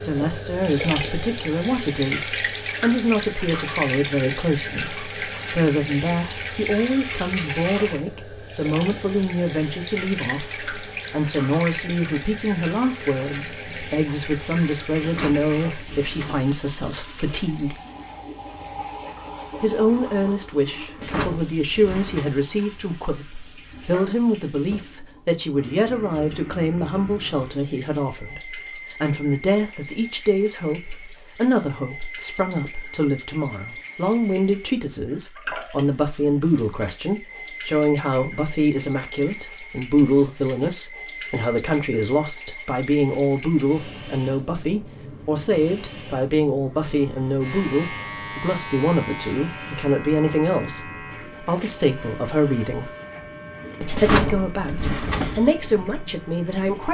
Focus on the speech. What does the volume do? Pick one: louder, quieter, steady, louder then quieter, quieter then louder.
steady.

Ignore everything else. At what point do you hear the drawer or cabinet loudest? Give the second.
54 s.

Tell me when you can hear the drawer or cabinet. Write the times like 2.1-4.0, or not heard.
15.0-16.5, 20.9-22.4, 53.9-55.5.